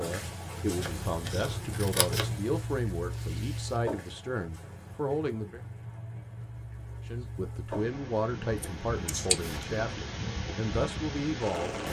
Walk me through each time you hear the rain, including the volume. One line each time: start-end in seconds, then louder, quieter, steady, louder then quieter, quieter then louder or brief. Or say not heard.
0.0-11.8 quieter then louder.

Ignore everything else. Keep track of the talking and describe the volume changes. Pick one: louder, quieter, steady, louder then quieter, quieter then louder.
steady.